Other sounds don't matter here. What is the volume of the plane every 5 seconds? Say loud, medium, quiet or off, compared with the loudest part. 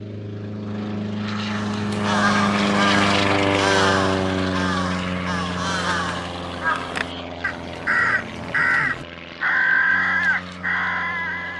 loud, medium, quiet.